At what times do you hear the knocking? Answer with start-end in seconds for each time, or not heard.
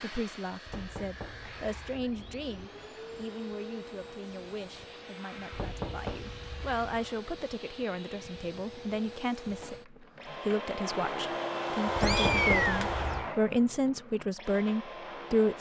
0.7-2.6, 5.5-7.1, 11.9-13.3.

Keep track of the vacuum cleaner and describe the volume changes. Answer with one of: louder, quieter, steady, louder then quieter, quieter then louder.
louder.